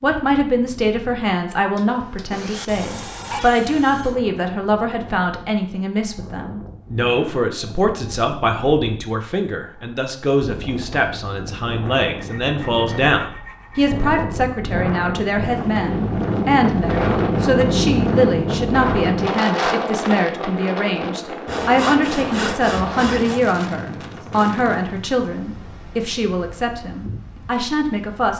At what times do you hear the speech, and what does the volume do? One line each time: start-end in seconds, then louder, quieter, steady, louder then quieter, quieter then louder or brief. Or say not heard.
0.0-28.3 steady.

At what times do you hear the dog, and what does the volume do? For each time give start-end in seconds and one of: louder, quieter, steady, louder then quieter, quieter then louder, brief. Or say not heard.
not heard.